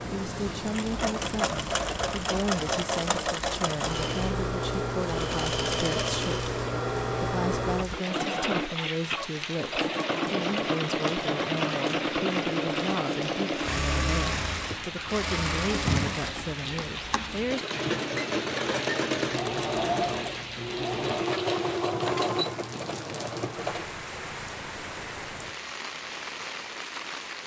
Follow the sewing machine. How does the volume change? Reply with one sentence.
The loudness of the sewing machine stays about the same.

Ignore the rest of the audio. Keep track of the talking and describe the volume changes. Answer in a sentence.
The loudness of the talking stays about the same.